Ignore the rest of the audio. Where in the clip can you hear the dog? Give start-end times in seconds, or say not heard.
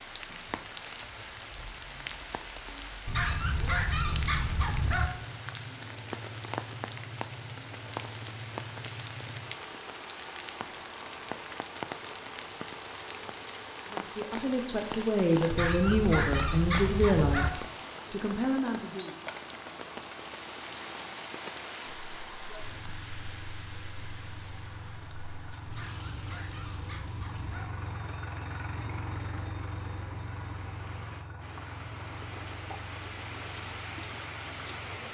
3.0-5.1, 15.5-17.5, 25.6-27.7.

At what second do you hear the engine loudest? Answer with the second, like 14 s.
29 s.